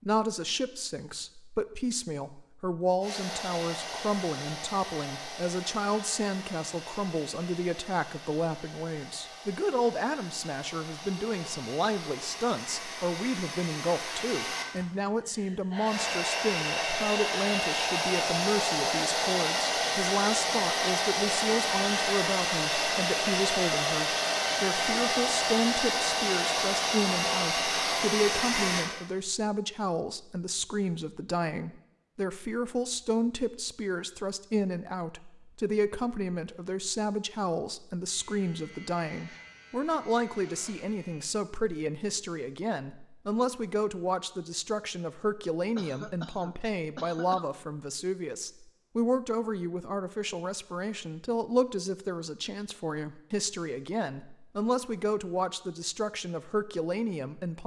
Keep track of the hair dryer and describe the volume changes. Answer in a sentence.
The loudness of the hair dryer goes up.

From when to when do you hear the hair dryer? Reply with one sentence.
You can hear the hair dryer from 3.0 to 28.9 s.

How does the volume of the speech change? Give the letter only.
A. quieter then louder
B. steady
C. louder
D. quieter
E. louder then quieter
B.